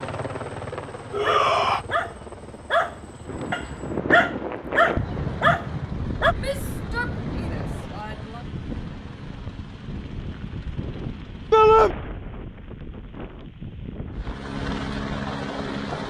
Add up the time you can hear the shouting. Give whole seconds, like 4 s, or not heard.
3 s.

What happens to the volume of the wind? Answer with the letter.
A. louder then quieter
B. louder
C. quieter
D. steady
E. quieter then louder
C.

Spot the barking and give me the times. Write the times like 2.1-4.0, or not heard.
1.2-6.3.